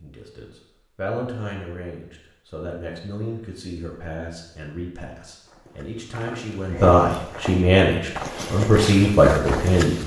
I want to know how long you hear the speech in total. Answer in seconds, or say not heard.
10 s.